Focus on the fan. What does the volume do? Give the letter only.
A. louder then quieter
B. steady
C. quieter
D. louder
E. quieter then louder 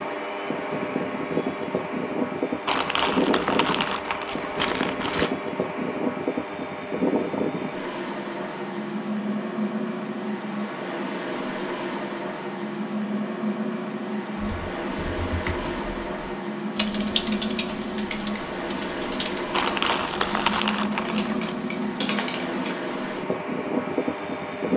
B.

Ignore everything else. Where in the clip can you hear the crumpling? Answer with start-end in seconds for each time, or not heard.
2.6-5.3, 19.5-21.6.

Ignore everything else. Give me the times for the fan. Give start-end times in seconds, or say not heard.
0.0-24.7.